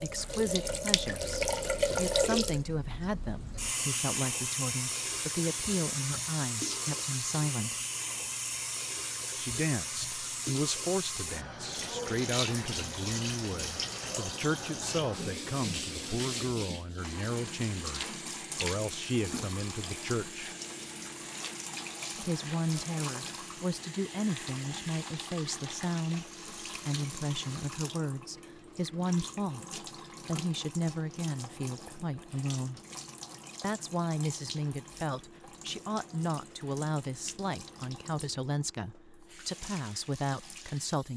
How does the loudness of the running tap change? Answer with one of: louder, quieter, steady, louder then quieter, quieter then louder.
quieter.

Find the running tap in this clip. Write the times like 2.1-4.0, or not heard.
0.0-41.1.